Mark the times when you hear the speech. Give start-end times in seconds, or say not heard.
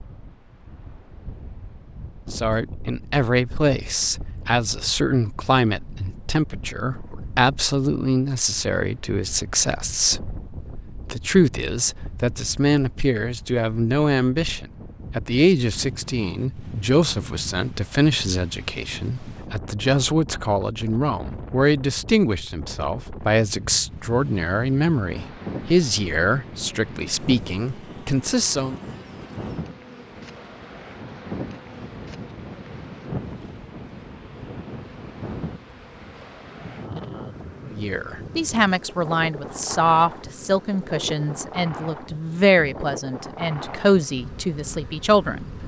2.3-28.8, 37.7-45.5.